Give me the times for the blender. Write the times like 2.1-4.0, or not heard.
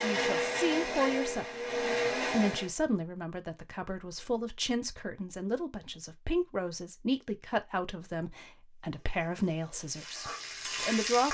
0.0-2.7.